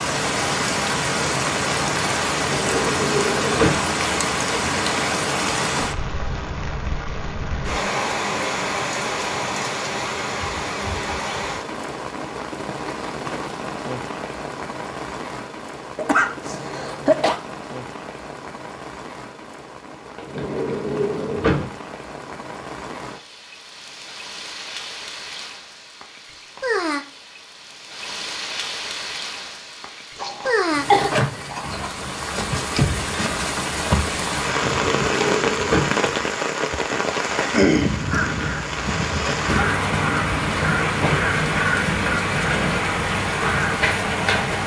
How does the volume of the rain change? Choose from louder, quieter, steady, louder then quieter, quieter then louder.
quieter then louder.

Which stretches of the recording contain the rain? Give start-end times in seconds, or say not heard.
0.0-44.6.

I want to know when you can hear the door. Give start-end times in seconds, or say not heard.
2.4-3.9, 20.1-21.7, 34.5-36.0.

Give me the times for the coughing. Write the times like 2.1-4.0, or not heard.
15.9-17.4, 30.1-31.1.